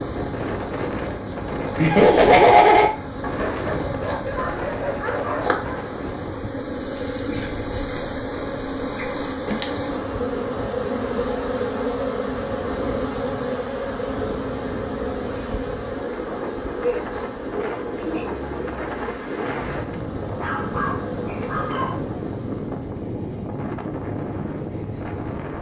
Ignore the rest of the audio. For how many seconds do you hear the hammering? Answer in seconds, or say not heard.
not heard.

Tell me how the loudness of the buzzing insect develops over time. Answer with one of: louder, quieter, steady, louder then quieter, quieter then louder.
louder then quieter.